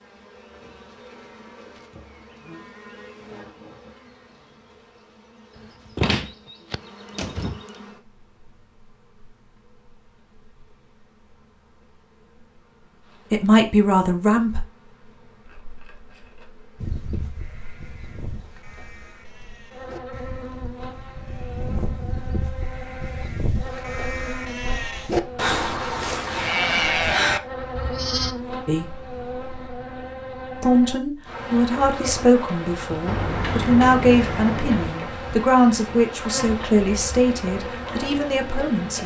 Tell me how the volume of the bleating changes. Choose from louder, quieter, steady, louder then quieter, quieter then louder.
louder.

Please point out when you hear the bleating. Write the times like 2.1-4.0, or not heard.
16.8-28.4.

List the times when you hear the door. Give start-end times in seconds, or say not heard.
6.0-7.7, 33.0-35.0.